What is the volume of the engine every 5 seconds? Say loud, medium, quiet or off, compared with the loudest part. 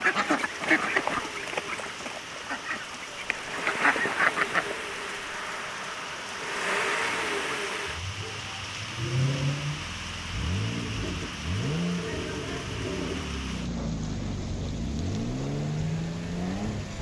medium, loud, loud, loud.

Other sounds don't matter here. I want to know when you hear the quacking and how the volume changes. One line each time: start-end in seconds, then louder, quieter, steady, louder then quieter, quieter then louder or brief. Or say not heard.
0.0-4.8 quieter then louder.